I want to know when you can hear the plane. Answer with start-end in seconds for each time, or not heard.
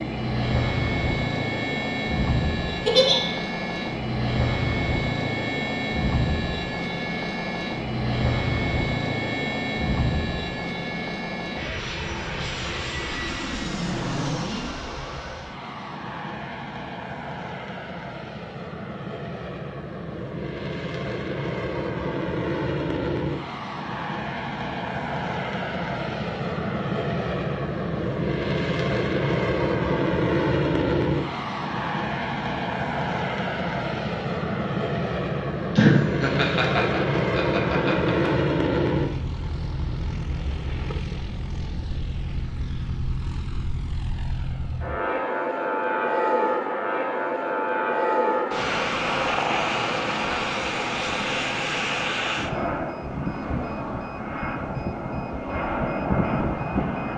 0.0-57.1.